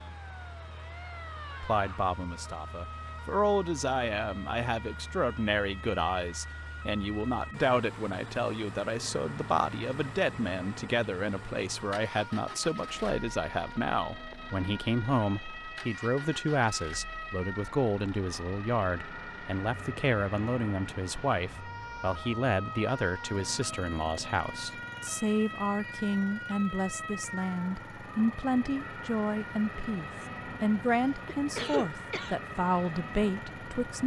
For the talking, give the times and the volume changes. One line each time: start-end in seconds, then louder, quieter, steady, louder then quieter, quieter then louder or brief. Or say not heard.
1.6-34.0 steady.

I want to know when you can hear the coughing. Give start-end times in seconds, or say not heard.
30.9-32.4.